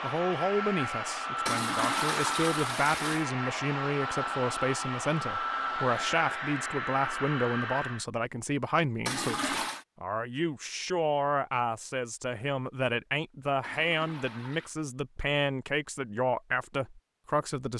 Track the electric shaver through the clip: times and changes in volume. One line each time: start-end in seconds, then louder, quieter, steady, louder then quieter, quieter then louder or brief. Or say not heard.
not heard.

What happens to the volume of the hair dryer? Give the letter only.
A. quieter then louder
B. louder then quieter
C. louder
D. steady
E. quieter
D.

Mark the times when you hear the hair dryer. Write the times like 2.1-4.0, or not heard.
0.0-8.1.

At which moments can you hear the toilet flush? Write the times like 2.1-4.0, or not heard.
1.4-3.2, 9.1-9.8, 13.6-14.8.